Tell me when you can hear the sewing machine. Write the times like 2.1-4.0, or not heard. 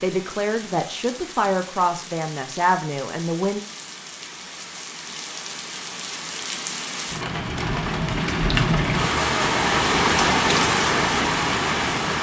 not heard.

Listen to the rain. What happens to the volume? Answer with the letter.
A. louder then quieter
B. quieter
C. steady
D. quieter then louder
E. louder
E.